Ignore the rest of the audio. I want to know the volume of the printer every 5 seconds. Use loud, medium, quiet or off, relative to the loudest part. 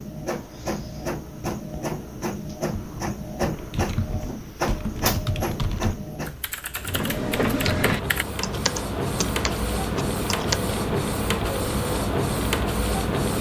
medium, loud, loud.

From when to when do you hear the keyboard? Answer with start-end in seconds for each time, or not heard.
2.7-10.6.